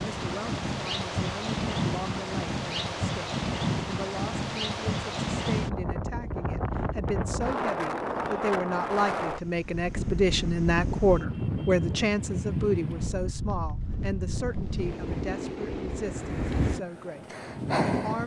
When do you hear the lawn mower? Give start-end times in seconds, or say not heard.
not heard.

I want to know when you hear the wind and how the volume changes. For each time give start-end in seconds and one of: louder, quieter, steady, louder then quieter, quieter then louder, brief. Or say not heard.
0.0-18.2 steady.